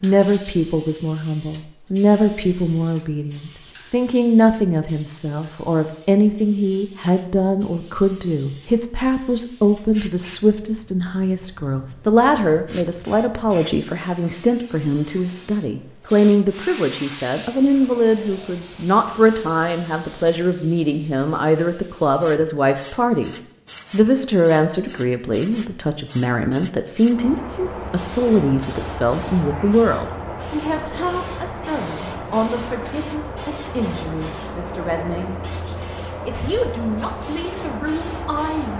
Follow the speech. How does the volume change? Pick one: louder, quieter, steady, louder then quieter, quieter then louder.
quieter.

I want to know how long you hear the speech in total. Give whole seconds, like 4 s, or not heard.
39 s.